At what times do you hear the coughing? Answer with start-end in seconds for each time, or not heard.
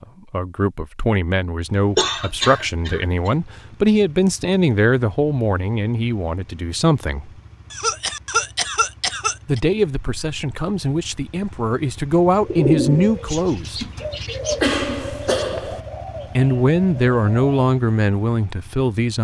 1.9-3.3, 7.7-9.6, 14.6-15.8.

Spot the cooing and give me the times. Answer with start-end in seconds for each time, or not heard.
12.4-17.6.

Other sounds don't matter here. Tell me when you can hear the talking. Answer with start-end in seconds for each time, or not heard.
0.0-7.3, 9.4-13.8, 16.4-19.1.